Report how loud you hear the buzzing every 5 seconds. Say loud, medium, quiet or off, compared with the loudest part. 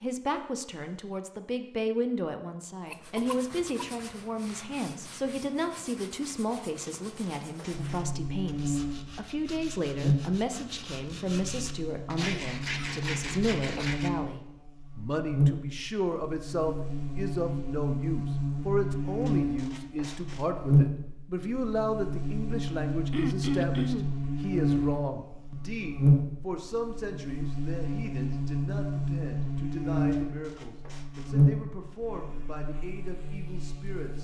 off, medium, medium, loud, loud, loud, loud.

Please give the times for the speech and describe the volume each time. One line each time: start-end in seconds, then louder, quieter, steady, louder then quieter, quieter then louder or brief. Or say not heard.
0.0-34.1 quieter.